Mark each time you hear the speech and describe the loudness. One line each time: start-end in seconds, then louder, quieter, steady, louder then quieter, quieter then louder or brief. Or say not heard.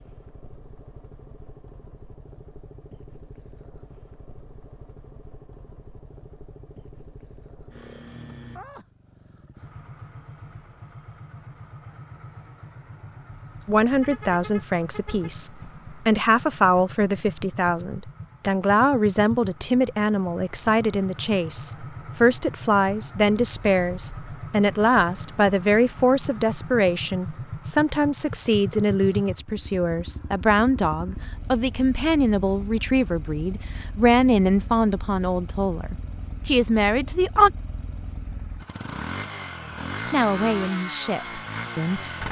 13.7-37.5 steady
40.1-42.2 brief.